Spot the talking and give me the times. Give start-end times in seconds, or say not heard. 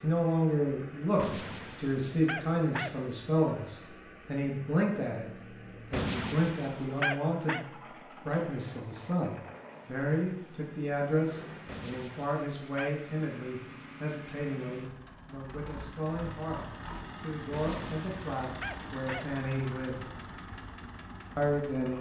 0.0-5.3, 5.9-16.6, 17.2-20.0, 21.4-21.9.